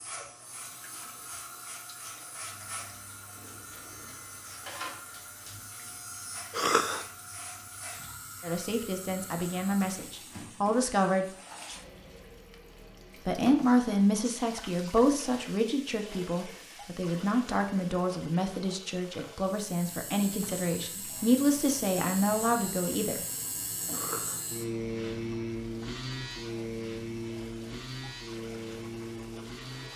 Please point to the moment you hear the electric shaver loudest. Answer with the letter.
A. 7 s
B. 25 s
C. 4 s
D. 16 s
B.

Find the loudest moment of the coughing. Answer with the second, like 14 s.
7 s.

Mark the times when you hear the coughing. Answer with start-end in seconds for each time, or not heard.
6.5-7.0, 23.9-24.4.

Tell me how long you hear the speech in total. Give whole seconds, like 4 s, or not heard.
13 s.